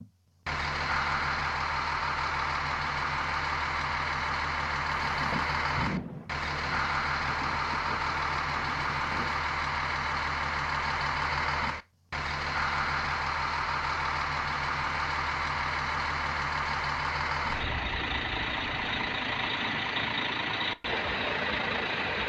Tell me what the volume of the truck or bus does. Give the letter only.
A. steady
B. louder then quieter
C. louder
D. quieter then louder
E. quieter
A.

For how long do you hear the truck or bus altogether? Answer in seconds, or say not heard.
22 s.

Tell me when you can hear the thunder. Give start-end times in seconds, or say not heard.
4.9-9.4.